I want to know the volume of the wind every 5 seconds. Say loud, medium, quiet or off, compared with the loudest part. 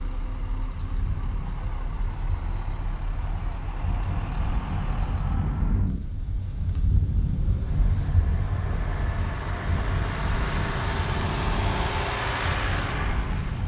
medium, loud, loud.